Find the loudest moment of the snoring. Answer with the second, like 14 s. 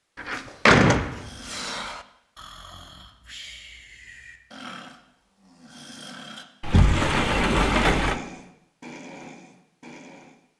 8 s.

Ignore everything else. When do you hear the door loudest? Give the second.
1 s.